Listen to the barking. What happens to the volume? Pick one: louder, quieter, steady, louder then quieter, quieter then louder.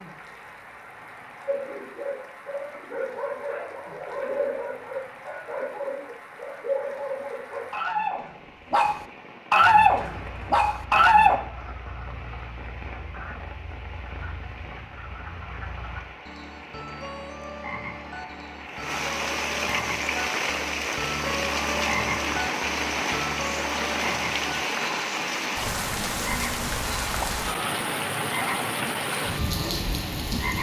louder.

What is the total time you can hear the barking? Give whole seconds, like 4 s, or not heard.
10 s.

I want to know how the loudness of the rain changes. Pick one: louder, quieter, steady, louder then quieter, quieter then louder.
louder.